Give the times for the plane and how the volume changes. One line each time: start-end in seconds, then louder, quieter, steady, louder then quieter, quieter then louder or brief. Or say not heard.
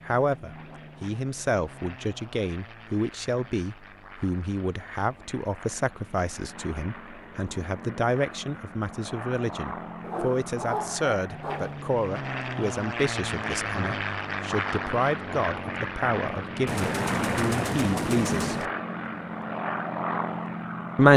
0.0-21.1 louder.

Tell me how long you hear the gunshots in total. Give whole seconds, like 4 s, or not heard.
2 s.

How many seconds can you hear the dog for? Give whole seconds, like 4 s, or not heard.
2 s.